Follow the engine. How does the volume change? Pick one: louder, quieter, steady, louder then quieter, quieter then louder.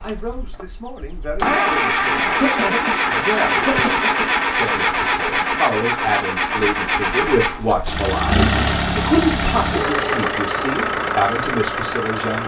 steady.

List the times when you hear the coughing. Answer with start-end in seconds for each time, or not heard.
2.2-4.2.